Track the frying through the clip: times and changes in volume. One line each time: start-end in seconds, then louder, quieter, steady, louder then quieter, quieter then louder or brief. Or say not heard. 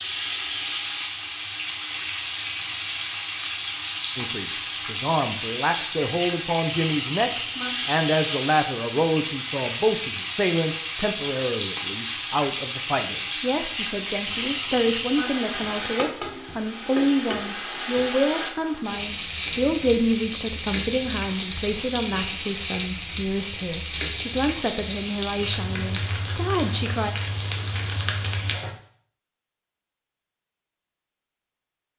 0.0-28.7 steady.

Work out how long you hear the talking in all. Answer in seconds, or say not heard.
23 s.